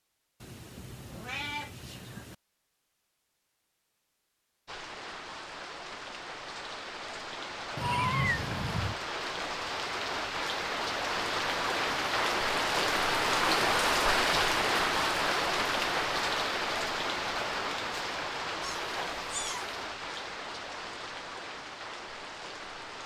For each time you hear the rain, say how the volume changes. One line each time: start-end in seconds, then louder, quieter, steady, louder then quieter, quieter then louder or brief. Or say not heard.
4.7-23.0 louder then quieter.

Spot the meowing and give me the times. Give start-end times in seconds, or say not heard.
0.4-2.4, 7.8-9.0, 18.6-19.7.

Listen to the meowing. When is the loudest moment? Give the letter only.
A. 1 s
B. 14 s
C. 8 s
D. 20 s
C.